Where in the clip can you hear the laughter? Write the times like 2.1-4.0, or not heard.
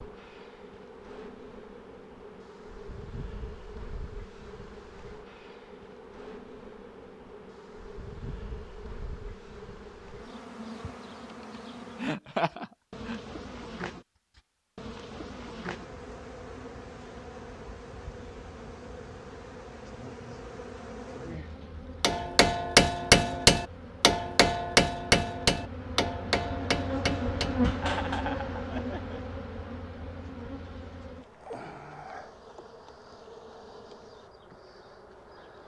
11.9-13.2, 27.8-29.4.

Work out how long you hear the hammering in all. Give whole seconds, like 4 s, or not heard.
6 s.